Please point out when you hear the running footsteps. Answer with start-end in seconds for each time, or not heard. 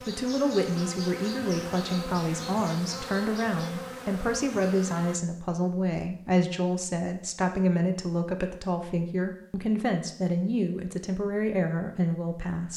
not heard.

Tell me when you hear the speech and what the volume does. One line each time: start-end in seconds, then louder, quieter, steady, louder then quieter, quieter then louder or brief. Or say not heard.
0.1-12.7 steady.